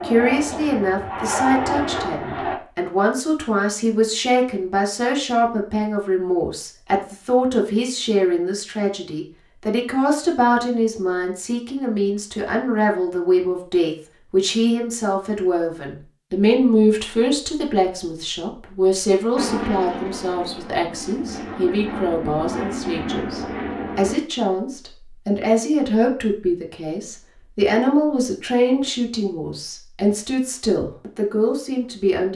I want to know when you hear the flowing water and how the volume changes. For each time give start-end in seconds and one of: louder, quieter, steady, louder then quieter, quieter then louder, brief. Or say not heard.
not heard.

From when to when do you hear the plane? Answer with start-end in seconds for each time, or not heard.
0.0-2.6, 19.4-24.1.